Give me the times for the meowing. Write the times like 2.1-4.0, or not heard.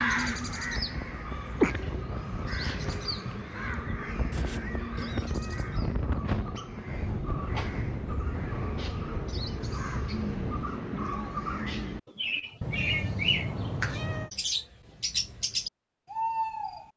4.3-5.7, 12.6-14.3.